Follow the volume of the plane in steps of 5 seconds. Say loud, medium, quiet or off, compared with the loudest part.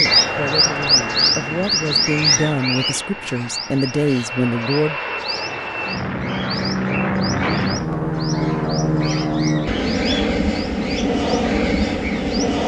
medium, loud, loud.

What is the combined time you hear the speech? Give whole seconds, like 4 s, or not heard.
5 s.